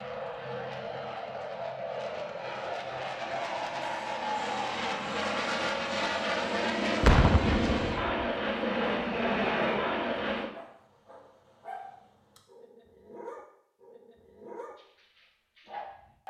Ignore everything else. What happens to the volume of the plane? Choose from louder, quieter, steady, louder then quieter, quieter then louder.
louder.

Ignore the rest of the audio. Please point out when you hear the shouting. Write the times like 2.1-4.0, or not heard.
not heard.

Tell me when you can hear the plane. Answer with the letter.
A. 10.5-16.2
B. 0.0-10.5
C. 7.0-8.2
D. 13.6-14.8
B.